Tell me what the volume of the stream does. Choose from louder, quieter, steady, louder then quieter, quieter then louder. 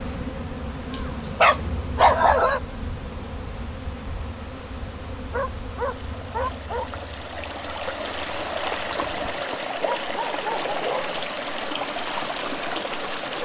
louder.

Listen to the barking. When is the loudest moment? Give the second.
2 s.